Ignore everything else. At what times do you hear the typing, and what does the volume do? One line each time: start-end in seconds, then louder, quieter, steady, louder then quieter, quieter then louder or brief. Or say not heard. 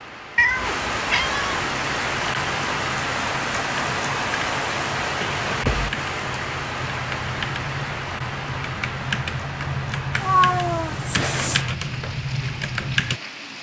1.5-13.2 louder.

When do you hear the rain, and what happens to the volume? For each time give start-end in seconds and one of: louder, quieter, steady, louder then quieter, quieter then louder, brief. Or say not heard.
0.0-13.5 quieter.